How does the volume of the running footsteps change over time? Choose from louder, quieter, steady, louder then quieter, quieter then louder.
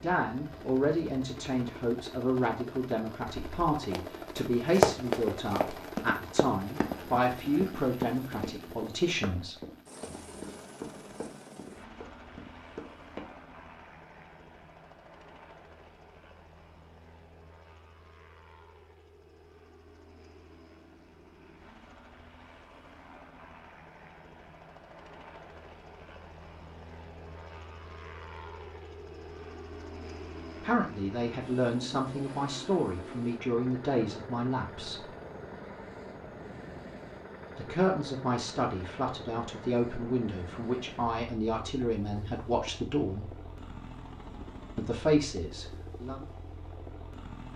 quieter.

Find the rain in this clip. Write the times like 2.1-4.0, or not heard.
not heard.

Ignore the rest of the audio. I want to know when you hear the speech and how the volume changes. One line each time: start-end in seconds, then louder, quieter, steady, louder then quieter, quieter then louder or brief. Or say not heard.
0.0-9.6 steady
30.6-35.1 steady
37.5-43.4 steady
44.8-46.2 brief.